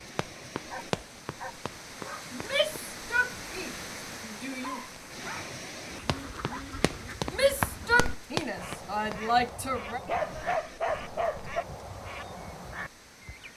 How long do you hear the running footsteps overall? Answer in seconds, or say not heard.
6 s.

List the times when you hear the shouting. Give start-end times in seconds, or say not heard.
2.3-4.8, 7.3-10.0.